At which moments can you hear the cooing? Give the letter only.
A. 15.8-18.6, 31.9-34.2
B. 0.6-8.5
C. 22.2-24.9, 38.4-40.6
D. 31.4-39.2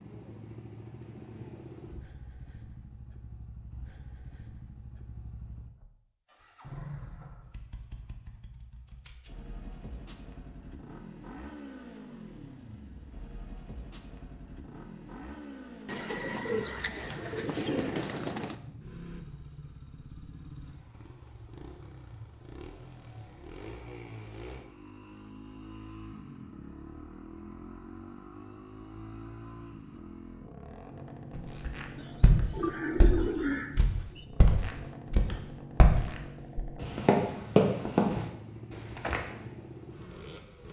A.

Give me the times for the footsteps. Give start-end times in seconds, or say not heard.
31.4-39.2.